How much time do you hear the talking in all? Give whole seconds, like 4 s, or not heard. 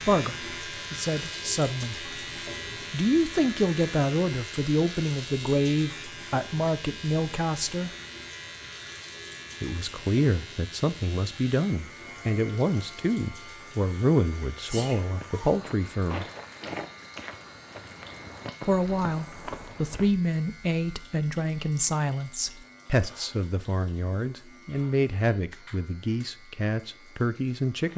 23 s.